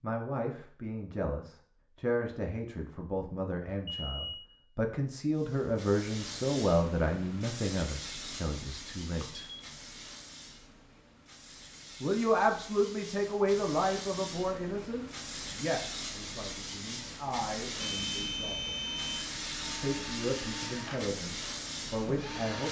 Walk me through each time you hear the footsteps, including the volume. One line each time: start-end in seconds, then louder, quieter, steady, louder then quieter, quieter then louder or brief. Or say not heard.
not heard.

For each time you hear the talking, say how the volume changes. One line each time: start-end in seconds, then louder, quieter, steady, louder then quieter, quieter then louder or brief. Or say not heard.
0.0-9.4 louder then quieter
12.0-18.8 quieter then louder
19.8-22.6 brief.